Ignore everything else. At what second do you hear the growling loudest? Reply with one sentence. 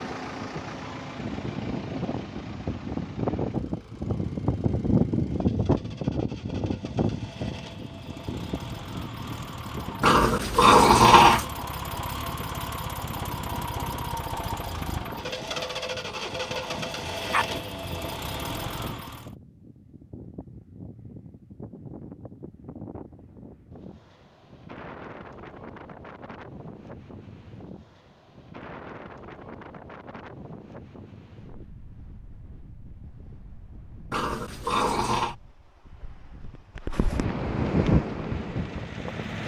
The loudest moment of the growling is at 11 seconds.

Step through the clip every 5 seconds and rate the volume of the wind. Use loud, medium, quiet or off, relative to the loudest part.
loud, loud, quiet, quiet, quiet, quiet, quiet, loud.